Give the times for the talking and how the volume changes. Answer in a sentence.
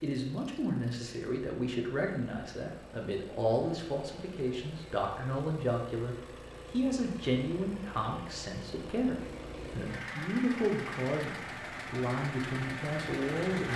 The talking can be heard from 0.0 to 13.7 s, at a steady volume.